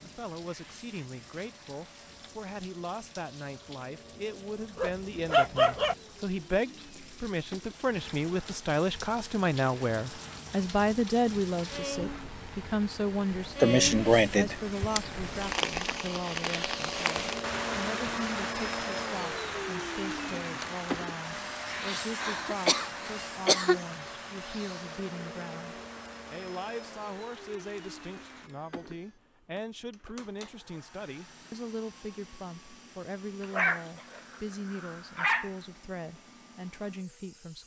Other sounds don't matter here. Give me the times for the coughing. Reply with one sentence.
The coughing can be heard from 13.6 to 15.0 s and from 21.8 to 23.8 s.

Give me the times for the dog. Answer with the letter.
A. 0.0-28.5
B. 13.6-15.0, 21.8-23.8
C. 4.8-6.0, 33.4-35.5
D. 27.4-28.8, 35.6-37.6
C.